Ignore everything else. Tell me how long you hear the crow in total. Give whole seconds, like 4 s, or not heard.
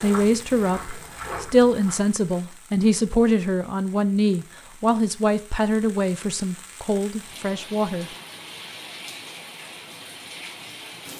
not heard.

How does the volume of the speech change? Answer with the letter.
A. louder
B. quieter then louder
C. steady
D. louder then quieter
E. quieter
E.